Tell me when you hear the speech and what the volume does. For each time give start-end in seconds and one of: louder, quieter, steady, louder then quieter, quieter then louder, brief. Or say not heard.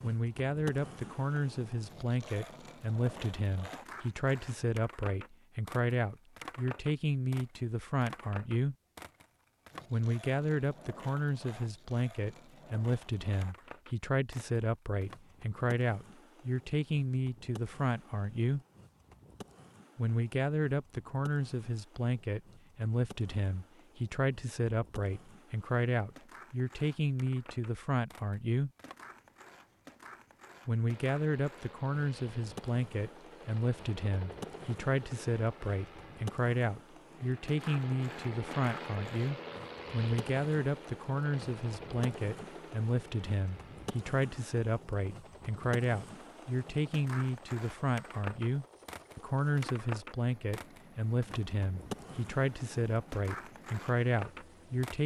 0.0-8.8 steady
9.9-18.6 steady
19.9-28.7 steady
30.6-55.0 steady.